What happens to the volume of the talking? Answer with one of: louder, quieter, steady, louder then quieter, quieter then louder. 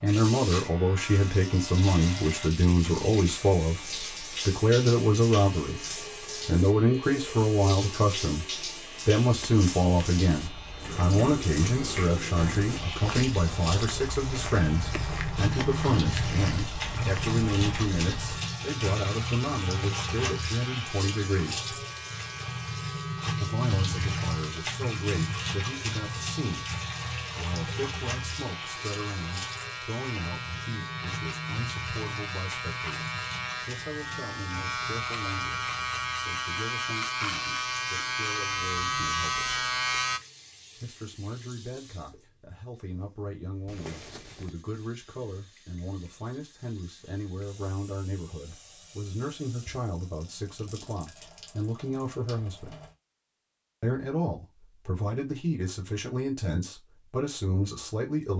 quieter then louder.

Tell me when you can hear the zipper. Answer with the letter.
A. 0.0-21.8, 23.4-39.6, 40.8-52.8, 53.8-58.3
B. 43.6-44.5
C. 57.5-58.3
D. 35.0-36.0
B.